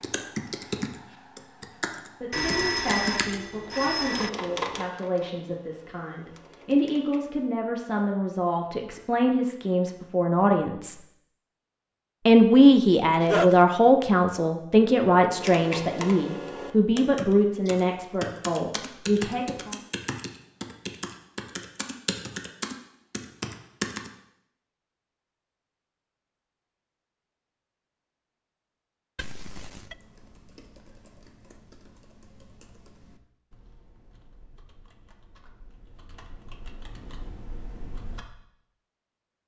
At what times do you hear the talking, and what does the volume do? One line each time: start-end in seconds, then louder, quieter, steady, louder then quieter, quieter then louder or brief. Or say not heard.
2.2-10.9 louder
12.2-19.8 quieter.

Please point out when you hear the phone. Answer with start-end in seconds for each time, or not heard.
2.3-4.3, 13.2-13.6, 29.1-29.9.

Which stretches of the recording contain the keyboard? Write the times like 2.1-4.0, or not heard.
0.0-7.2, 15.3-24.1, 29.5-38.2.